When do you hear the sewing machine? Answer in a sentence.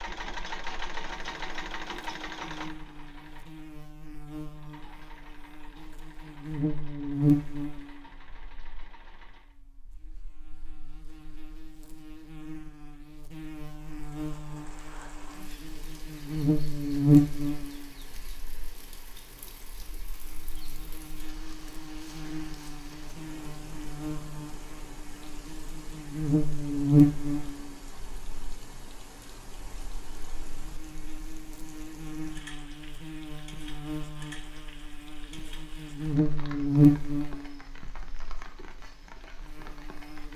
The sewing machine can be heard from 0.0 to 9.6 s.